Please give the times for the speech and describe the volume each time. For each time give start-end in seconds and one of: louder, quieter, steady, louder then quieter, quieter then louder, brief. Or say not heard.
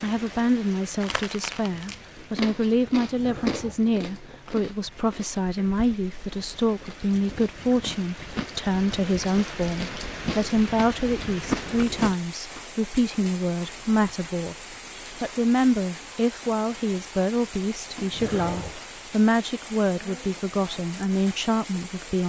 0.0-22.2 steady.